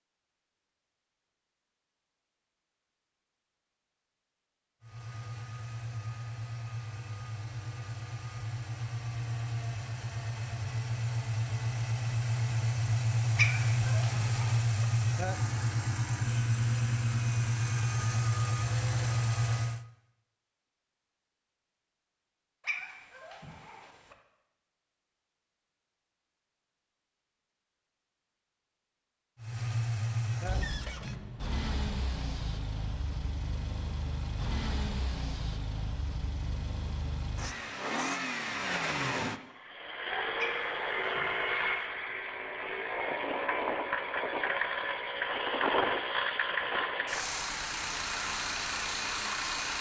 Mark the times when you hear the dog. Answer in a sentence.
You can hear the dog from 13.3 to 14.7 s, from 22.6 to 24.1 s and from 40.4 to 41.9 s.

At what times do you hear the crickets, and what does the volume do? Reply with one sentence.
The crickets can't be heard in this clip.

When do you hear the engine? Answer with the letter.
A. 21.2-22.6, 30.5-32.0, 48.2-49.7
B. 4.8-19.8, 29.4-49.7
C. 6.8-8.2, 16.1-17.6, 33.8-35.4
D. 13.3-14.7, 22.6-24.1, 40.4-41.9
B.